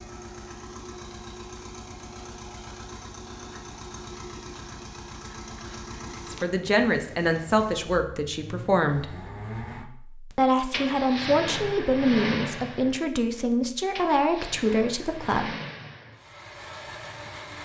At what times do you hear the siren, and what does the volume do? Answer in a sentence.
You can't hear the siren here.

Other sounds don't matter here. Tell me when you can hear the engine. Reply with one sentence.
The engine can be heard from 0.0 to 17.6 s.